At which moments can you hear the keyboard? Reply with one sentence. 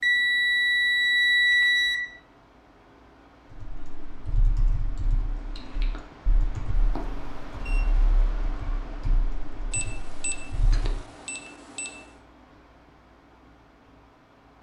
You can hear the keyboard from 3.5 to 11.1 s.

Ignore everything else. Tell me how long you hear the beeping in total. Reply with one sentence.
You can hear the beeping for 5 seconds altogether.